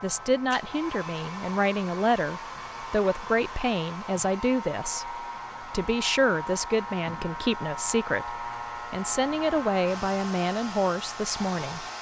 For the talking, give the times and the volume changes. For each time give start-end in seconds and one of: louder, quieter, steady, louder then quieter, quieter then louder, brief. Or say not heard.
0.0-11.8 steady.